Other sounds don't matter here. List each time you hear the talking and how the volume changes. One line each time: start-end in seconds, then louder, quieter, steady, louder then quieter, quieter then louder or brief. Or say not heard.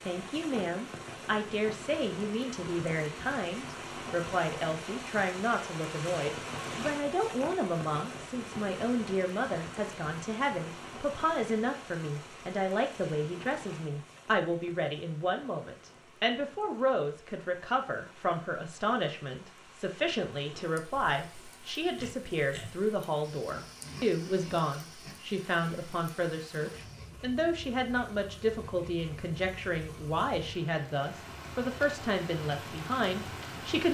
0.1-33.8 steady.